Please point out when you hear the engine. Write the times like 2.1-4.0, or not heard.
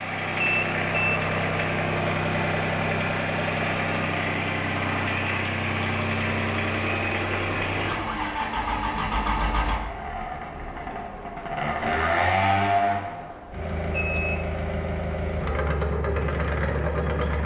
0.0-17.4.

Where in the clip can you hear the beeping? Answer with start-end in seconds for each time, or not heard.
0.4-1.2, 13.8-14.5.